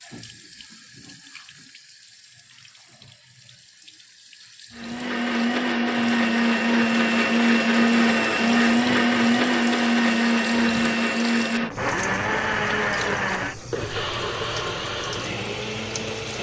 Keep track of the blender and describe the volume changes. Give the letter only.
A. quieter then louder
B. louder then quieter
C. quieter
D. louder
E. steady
C.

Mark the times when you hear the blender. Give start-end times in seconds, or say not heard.
4.7-16.3.